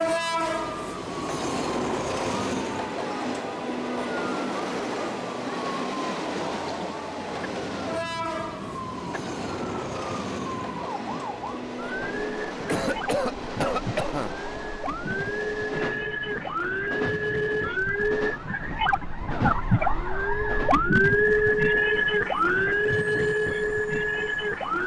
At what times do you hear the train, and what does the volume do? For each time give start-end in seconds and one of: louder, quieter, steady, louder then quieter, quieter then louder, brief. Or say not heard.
0.0-24.8 quieter.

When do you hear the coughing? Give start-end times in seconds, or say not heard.
6.2-7.0, 12.7-14.3.